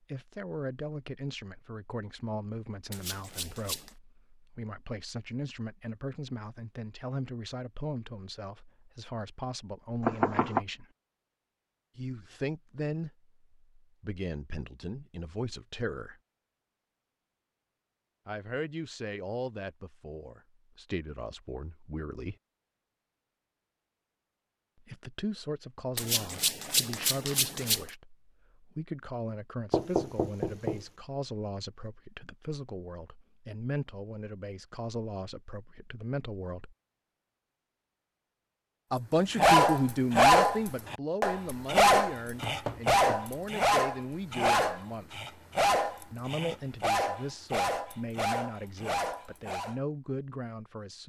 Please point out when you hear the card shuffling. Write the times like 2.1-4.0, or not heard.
2.9-4.0, 25.9-27.9.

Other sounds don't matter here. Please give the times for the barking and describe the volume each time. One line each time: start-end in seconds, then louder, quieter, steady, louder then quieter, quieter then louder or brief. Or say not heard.
39.4-49.8 quieter.